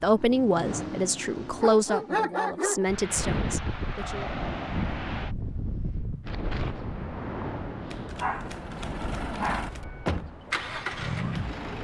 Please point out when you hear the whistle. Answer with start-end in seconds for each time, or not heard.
not heard.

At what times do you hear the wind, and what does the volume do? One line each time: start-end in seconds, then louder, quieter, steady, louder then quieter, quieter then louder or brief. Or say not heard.
2.9-11.7 quieter.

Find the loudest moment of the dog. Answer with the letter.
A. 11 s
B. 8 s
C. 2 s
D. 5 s
C.